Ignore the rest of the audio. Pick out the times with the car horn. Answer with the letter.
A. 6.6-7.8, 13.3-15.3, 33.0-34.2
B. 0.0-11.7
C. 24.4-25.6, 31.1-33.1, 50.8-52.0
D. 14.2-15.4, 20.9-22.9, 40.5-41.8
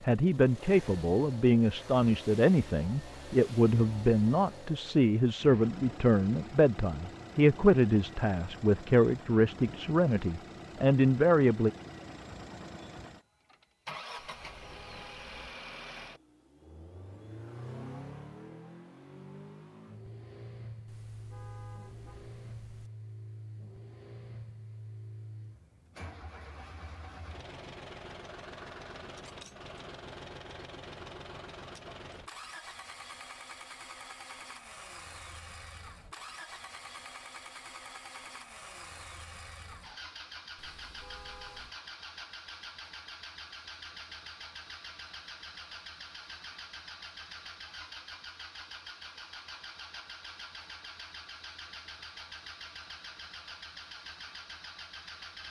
D.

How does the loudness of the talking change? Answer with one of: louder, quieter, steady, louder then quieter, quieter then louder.
steady.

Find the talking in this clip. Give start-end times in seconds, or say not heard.
0.0-11.7.